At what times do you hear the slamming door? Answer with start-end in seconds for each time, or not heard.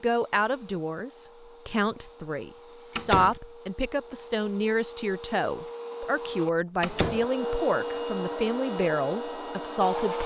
3.0-3.4, 6.8-7.2.